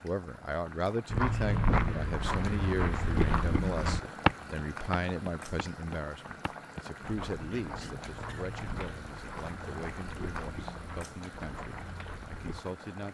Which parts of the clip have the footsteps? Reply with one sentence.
You can hear the footsteps from 1.1 to 12.7 s.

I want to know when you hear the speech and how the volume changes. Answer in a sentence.
You can hear the speech from 0.0 to 13.0 s, getting quieter.